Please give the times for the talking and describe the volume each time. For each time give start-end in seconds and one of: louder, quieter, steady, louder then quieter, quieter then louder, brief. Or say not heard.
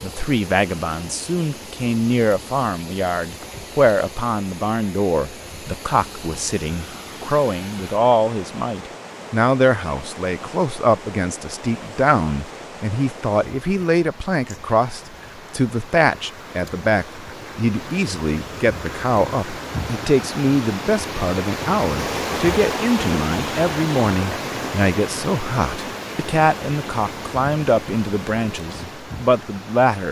0.0-30.0 steady.